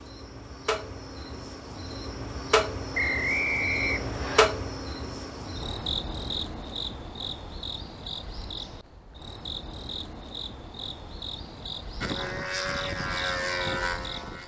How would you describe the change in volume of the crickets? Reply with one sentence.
The volume of the crickets goes down.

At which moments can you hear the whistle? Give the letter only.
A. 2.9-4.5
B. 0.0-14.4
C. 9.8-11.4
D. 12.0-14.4
A.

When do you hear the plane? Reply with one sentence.
The plane can be heard from 12.0 to 14.4 s.